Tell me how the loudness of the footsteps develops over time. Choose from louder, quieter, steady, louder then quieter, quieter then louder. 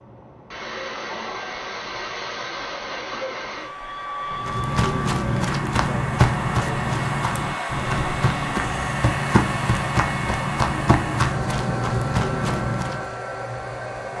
steady.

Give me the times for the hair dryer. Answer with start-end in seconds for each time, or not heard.
0.0-14.1.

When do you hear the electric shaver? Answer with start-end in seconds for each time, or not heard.
not heard.